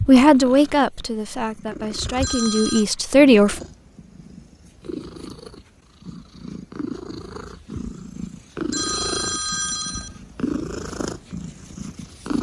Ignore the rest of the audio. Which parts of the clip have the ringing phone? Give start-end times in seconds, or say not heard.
2.2-2.9, 8.7-10.2.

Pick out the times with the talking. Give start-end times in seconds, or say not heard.
0.0-3.6.